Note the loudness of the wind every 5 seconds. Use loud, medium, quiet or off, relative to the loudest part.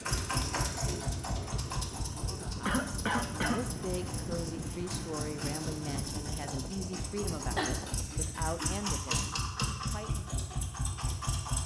loud, loud, off.